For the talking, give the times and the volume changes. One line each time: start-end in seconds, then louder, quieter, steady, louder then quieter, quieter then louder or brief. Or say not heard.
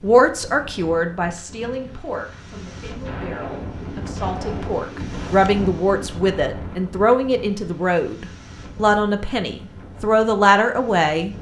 0.0-11.3 quieter then louder.